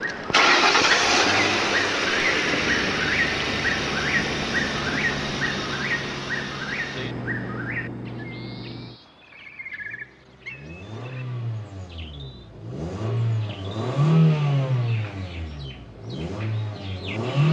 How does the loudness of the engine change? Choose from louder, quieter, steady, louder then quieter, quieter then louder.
quieter then louder.